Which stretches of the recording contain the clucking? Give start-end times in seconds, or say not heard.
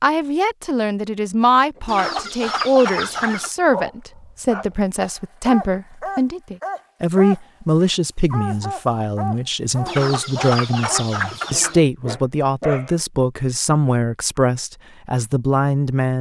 1.9-3.5, 9.8-11.8.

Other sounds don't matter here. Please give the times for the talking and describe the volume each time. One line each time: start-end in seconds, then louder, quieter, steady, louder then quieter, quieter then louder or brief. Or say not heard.
0.0-16.1 steady.